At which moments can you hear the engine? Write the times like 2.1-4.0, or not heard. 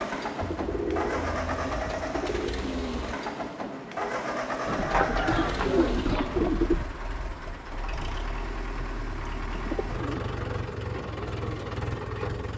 0.0-12.5.